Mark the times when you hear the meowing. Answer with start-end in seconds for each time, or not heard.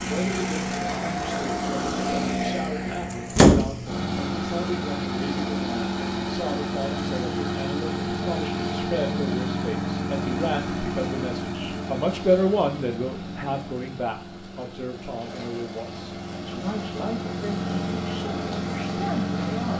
not heard.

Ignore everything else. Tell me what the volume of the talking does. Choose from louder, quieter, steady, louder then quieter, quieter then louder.
louder then quieter.